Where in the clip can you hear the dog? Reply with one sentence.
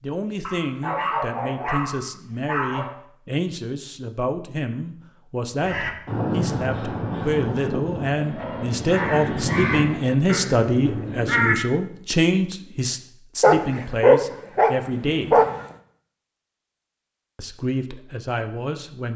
The dog can be heard from 0.5 to 3.0 s and from 13.4 to 15.7 s.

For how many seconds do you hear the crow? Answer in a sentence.
You can hear the crow for 6 seconds altogether.